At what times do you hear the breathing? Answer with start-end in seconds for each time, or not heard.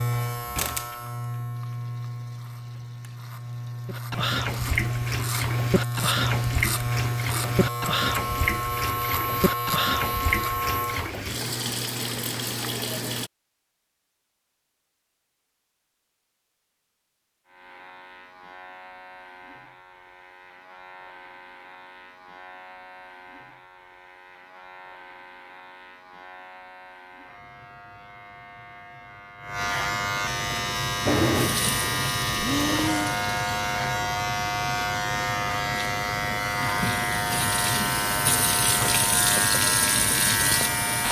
32.4-33.2.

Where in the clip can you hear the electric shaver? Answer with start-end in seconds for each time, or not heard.
0.0-11.1, 17.4-41.0.